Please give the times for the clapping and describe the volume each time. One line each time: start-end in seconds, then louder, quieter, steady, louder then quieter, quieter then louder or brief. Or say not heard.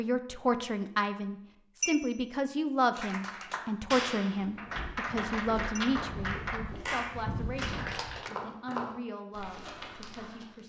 3.0-8.3 steady.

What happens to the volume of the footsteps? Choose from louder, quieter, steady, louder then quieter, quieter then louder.
louder then quieter.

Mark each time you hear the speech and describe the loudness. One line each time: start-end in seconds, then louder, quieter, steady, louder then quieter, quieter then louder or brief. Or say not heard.
0.0-10.6 quieter.